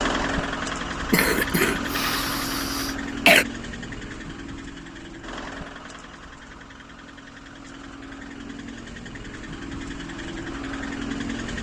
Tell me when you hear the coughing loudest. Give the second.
3 s.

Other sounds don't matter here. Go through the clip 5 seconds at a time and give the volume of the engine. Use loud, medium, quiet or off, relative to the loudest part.
loud, medium, loud.